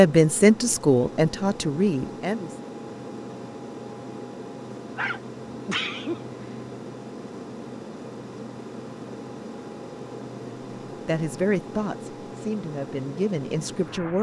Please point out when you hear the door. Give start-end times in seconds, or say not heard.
not heard.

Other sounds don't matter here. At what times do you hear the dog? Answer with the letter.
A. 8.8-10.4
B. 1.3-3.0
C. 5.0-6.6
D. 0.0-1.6
C.